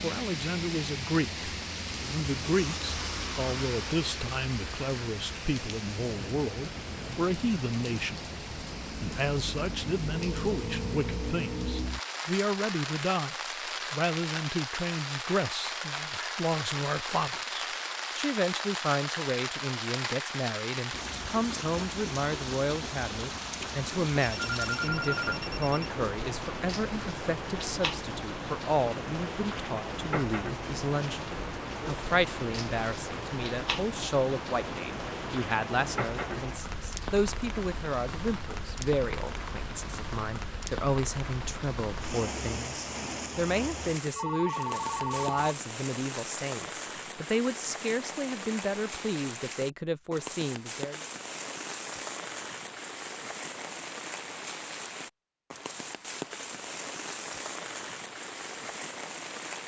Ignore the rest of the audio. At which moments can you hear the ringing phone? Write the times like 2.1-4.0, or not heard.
10.1-11.8, 24.2-25.9, 44.1-45.5.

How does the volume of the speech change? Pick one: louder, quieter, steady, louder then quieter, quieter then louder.
steady.